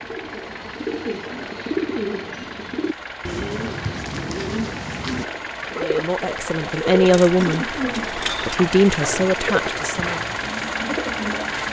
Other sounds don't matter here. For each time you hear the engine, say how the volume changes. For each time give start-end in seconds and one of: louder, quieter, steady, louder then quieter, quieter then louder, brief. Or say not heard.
0.0-11.6 louder.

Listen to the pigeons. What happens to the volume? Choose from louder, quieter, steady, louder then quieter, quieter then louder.
steady.